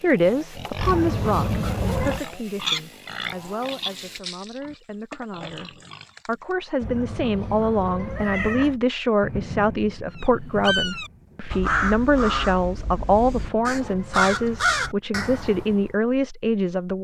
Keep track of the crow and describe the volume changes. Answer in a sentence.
The volume of the crow goes down, then up.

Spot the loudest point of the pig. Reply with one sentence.
The loudest moment of the pig is at 3 seconds.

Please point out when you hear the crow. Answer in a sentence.
You can hear the crow from 10.2 to 15.9 s.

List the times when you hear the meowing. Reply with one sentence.
You can hear the meowing from 0.8 to 2.2 s, from 6.8 to 8.8 s and from 12.8 to 14.3 s.